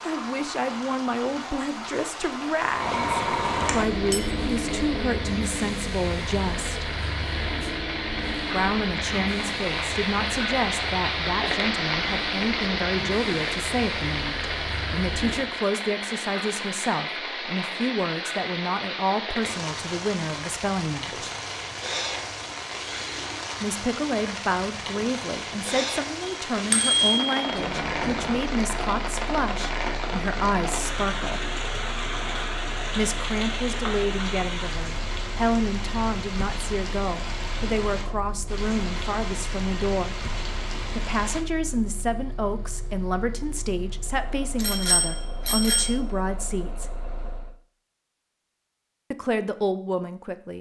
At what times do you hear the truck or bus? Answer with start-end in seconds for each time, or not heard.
2.6-15.6, 27.4-47.5.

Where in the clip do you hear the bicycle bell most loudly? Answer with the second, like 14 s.
27 s.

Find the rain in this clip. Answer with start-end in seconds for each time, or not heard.
0.0-41.4.